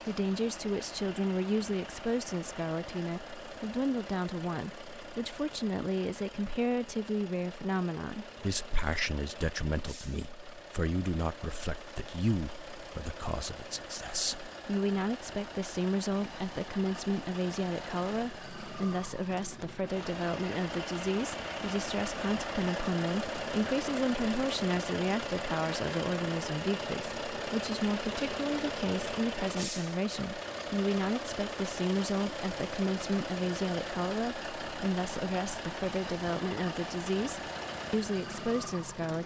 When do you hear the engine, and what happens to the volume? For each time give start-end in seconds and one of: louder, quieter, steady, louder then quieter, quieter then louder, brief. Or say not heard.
0.0-39.2 louder.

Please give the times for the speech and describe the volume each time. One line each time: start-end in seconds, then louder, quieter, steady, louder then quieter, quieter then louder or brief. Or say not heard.
0.1-39.2 steady.